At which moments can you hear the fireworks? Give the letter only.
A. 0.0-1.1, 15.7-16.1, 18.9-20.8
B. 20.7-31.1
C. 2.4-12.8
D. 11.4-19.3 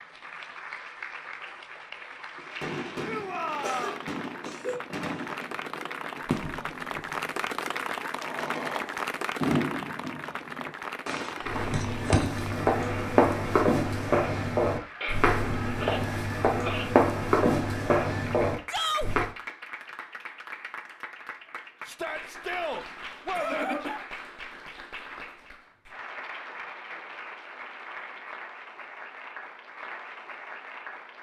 C.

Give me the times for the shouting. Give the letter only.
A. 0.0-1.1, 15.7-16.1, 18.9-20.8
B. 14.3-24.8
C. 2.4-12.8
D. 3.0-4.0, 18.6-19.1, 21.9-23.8
D.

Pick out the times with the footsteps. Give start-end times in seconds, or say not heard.
11.4-19.3.